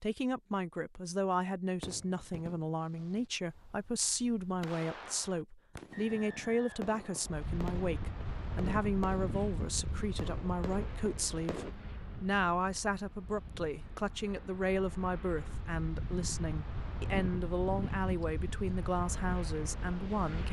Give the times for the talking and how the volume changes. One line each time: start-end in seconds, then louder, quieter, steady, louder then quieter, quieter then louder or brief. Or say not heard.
0.0-20.4 steady.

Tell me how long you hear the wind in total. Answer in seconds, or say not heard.
13 s.